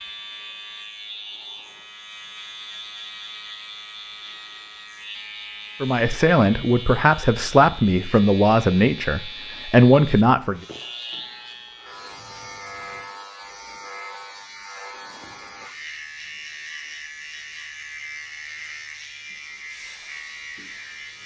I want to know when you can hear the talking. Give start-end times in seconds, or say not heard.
5.8-10.6.